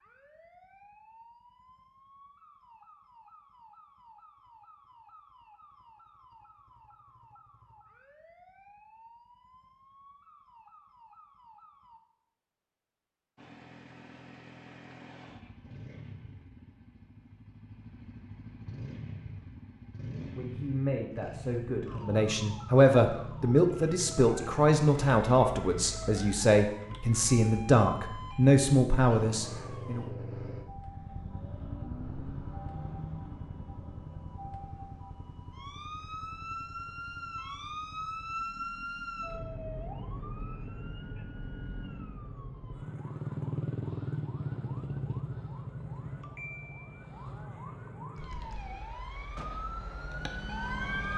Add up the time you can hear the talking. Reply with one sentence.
The talking can be heard for 10 seconds in total.